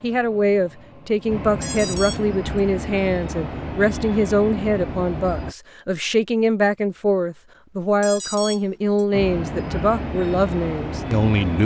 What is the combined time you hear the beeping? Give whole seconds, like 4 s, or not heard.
2 s.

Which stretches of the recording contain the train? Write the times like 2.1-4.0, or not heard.
0.0-5.5, 9.1-11.6.